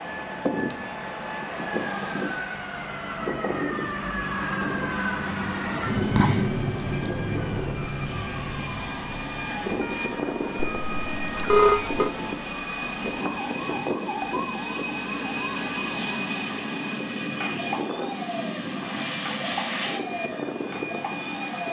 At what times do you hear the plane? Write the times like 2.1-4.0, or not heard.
0.0-21.6.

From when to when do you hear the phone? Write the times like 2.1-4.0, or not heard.
10.6-12.1.